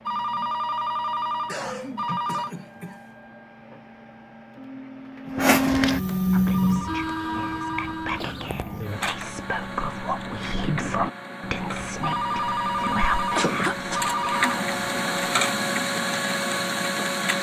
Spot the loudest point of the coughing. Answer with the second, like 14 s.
14 s.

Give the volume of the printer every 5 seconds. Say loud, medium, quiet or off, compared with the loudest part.
quiet, loud, medium, loud.